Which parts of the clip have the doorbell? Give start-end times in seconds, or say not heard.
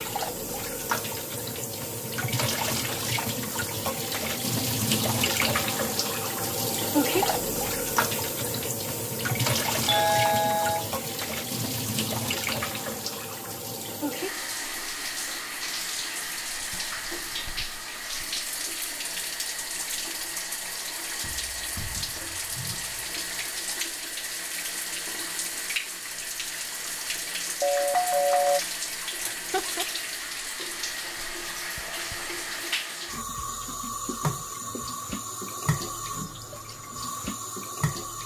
9.8-10.9, 27.6-28.6.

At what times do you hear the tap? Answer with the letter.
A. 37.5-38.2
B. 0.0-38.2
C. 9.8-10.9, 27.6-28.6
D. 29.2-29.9
B.